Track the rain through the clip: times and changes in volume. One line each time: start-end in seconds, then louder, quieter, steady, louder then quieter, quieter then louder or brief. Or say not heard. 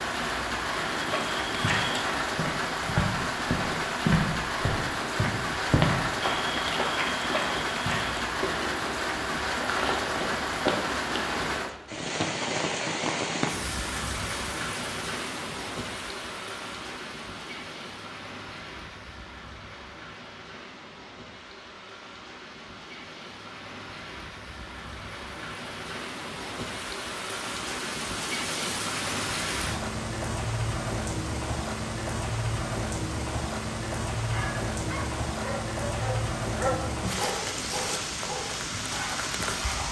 0.0-39.8 quieter then louder.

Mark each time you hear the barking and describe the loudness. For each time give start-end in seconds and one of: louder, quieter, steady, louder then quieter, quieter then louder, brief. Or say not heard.
34.2-39.8 louder then quieter.